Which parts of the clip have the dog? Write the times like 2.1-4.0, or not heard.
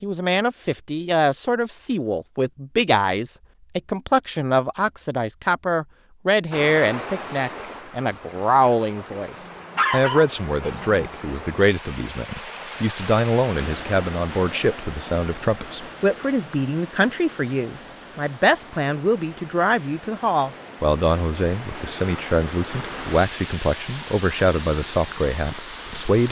9.4-11.0.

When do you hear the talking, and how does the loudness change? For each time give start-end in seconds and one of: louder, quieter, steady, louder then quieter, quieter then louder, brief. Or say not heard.
0.0-26.2 steady.